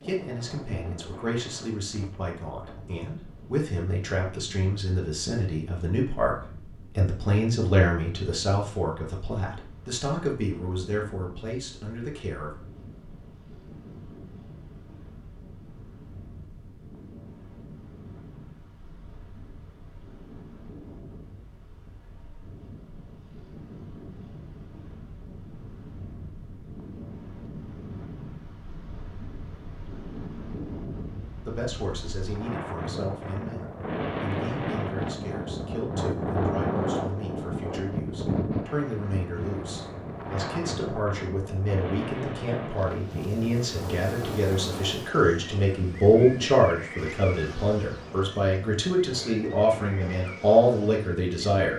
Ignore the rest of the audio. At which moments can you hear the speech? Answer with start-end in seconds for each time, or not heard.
0.0-12.6, 31.4-51.7.